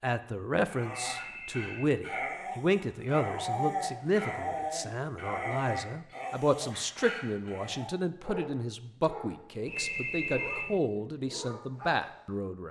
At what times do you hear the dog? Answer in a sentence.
You can hear the dog from 0.6 to 12.4 s.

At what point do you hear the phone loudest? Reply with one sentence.
The volume of the phone peaks at 10 seconds.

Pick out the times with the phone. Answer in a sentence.
You can hear the phone from 0.8 to 1.8 s and from 9.7 to 10.8 s.